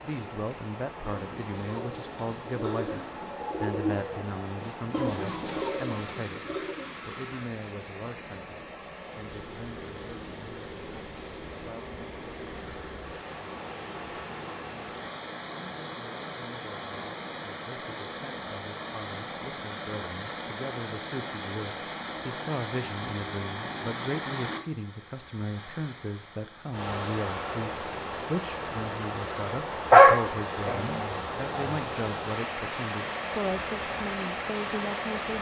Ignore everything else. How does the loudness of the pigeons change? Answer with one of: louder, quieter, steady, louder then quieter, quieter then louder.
louder.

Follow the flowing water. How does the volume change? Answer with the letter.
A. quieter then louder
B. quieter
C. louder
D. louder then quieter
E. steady
C.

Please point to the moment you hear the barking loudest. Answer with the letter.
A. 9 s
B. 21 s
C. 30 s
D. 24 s
C.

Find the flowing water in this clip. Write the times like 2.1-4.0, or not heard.
0.0-35.3.